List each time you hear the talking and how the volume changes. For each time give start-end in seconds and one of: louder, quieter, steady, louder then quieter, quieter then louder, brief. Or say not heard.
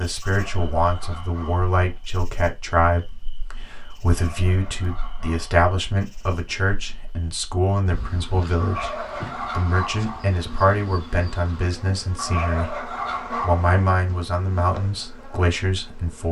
0.0-16.2 steady.